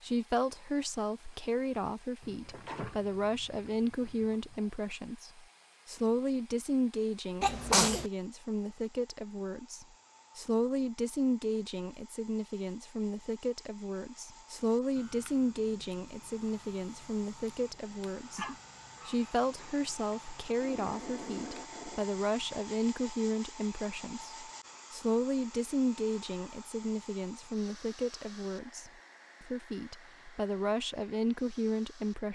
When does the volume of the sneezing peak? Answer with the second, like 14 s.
8 s.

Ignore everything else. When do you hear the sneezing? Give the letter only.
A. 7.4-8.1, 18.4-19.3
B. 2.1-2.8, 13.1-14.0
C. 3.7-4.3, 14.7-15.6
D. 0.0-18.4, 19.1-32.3
A.